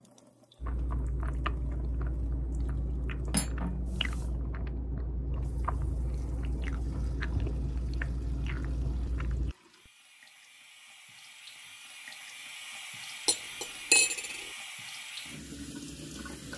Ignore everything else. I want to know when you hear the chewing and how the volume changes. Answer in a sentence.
You can hear the chewing from 0.6 to 9.6 s, at a steady volume.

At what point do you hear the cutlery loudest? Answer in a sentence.
The volume of the cutlery peaks at 14 seconds.